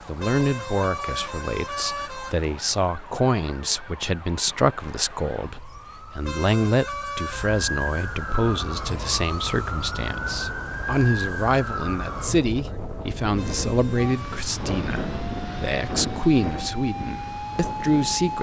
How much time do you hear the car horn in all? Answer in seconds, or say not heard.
5 s.